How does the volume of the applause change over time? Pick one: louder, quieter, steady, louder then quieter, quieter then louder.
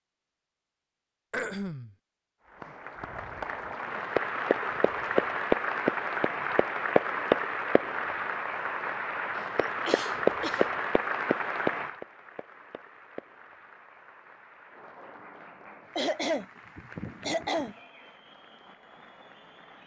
quieter.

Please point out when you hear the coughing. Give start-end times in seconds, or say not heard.
1.3-1.9, 9.6-10.7, 15.9-17.8.